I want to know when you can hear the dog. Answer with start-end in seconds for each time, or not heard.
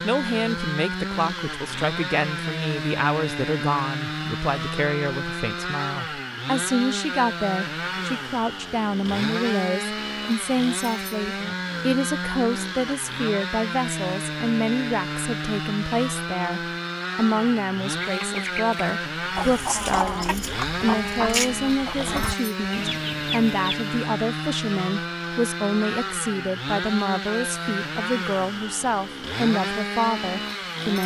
not heard.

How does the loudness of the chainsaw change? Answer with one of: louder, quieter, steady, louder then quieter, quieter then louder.
steady.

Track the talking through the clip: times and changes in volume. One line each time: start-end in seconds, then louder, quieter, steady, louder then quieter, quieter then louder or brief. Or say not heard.
0.0-31.0 steady.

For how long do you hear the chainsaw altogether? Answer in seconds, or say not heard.
31 s.